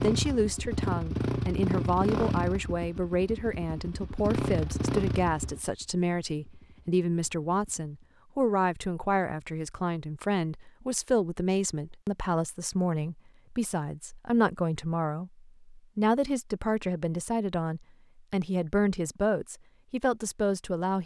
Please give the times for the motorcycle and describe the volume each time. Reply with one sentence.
You can hear the motorcycle from 0.0 to 8.2 s, getting quieter.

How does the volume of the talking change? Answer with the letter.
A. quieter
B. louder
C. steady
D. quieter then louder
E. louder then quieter
C.